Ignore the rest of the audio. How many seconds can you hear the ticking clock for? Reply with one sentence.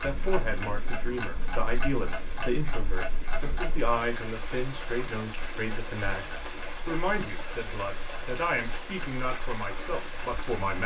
The ticking clock can be heard for 11 seconds in total.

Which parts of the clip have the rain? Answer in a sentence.
You can hear the rain from 0.0 to 10.8 s.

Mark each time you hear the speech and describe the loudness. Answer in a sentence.
You can hear the speech from 0.0 to 10.8 s, at a steady volume.